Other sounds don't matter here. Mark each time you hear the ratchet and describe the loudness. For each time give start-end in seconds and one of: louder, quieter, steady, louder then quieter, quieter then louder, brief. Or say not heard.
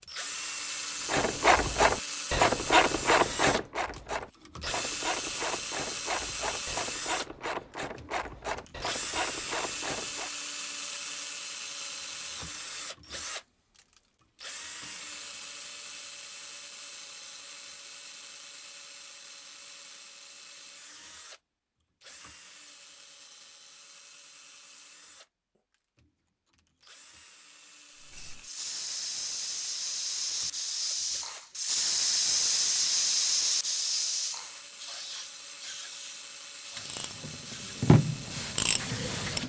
1.1-10.3 quieter
36.8-39.4 brief.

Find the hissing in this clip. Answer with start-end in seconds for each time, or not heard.
27.9-39.4.